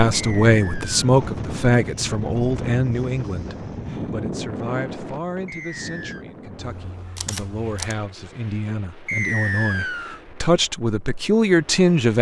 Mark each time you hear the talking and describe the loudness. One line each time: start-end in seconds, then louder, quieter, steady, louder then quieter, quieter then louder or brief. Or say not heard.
0.0-12.1 quieter then louder.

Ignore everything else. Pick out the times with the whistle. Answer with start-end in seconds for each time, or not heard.
0.1-1.0, 5.5-6.2, 9.1-10.2.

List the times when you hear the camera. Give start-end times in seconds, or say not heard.
6.5-8.0.